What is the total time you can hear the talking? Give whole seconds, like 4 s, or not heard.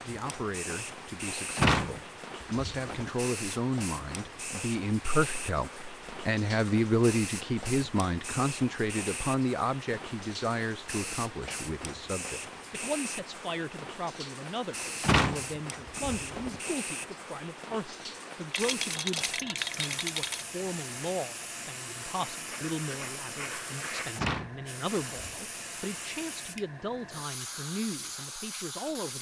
29 s.